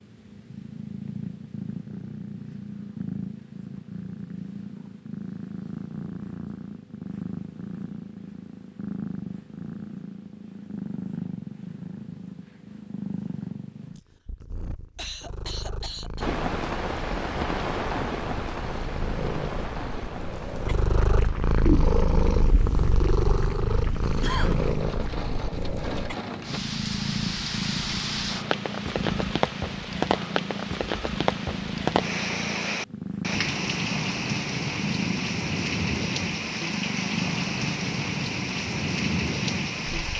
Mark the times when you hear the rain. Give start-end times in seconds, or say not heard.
16.2-40.1.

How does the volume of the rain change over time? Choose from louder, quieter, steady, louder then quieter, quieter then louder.
quieter then louder.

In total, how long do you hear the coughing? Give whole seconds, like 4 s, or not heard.
3 s.